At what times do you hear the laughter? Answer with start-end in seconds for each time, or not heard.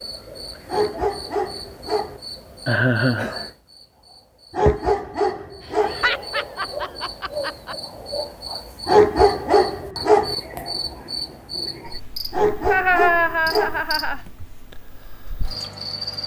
2.6-3.3, 5.7-7.8, 12.7-14.4.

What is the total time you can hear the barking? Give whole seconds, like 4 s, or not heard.
6 s.